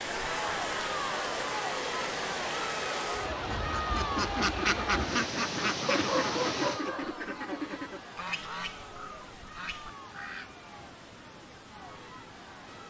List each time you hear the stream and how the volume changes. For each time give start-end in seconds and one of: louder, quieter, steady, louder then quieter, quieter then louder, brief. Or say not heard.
0.0-12.8 quieter.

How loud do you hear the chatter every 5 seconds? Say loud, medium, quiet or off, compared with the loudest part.
loud, medium, quiet.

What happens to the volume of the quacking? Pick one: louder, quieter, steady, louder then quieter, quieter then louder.
quieter.